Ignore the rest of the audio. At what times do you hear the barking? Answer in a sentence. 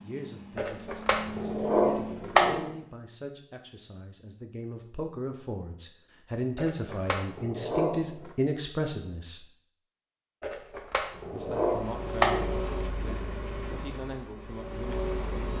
The barking can be heard from 0.6 to 2.7 s, from 6.5 to 8.3 s and from 10.4 to 12.6 s.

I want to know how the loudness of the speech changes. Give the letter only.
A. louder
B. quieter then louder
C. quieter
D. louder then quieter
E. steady
D.